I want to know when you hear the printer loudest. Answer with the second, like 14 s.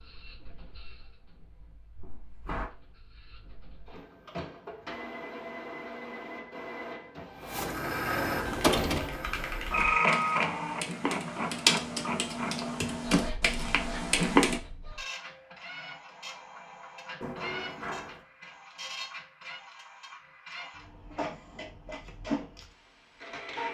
10 s.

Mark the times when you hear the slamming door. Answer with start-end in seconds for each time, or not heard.
2.0-2.7, 17.2-18.2.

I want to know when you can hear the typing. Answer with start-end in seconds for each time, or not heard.
8.4-14.6.